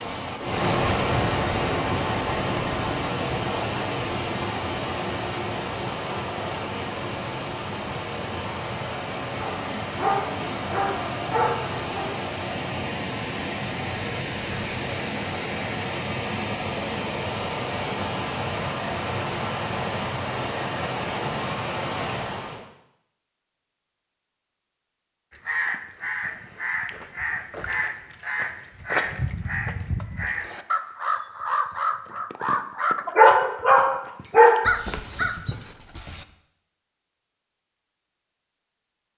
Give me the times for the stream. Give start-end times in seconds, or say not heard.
0.0-22.6.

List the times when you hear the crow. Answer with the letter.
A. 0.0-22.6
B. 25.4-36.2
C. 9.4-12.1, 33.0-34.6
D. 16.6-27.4
B.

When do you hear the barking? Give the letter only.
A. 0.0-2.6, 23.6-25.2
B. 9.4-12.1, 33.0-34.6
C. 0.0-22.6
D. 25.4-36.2
B.